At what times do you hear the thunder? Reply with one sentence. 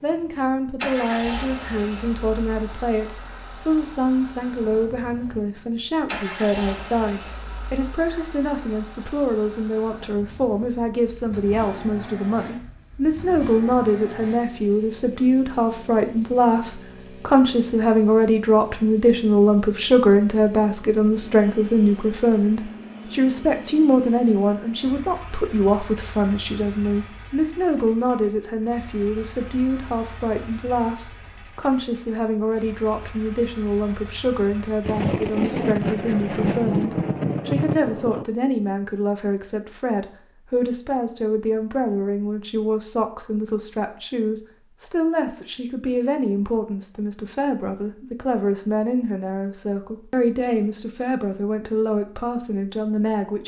You can hear the thunder from 34.9 to 38.2 s.